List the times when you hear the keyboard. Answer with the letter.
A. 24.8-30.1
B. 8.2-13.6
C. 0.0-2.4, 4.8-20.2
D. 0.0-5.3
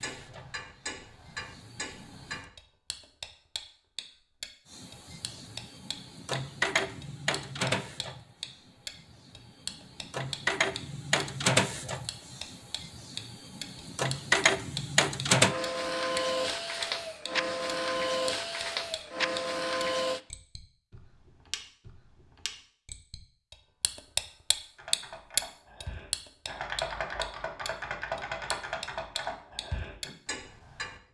A.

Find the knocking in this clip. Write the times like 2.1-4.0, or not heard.
not heard.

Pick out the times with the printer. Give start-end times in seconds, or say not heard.
0.0-2.4, 4.8-20.2.